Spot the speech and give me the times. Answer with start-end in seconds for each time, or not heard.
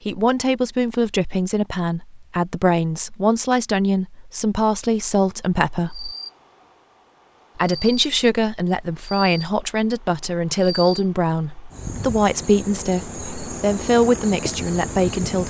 0.1-6.2, 7.5-15.4.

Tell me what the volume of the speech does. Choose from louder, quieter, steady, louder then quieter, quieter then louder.
steady.